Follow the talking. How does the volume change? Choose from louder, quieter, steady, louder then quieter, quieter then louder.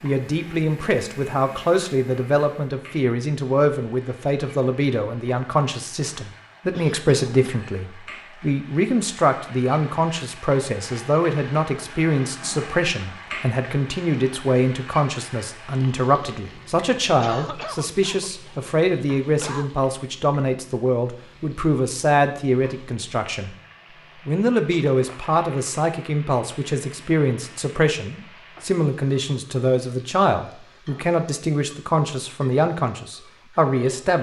steady.